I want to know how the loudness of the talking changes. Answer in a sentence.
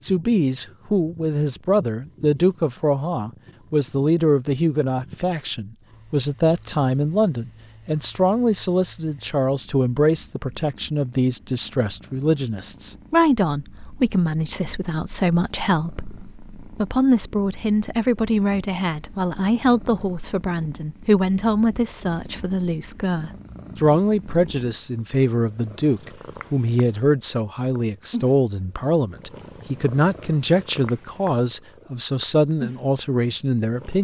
The volume of the talking stays about the same.